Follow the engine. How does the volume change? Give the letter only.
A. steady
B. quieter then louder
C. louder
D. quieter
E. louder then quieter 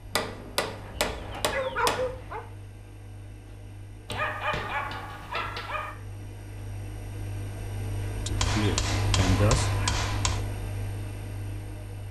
C.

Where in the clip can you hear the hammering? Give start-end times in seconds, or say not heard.
0.1-2.1, 4.0-5.8, 8.3-10.4.